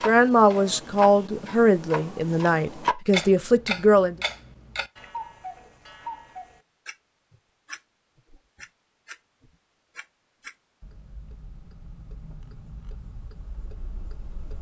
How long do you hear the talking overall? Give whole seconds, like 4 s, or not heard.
4 s.